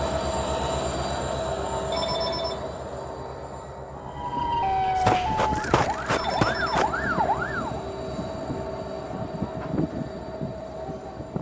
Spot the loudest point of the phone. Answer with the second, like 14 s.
2 s.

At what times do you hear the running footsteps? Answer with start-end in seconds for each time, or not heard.
5.0-6.8.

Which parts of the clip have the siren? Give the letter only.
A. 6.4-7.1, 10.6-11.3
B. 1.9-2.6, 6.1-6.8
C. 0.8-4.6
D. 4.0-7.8
D.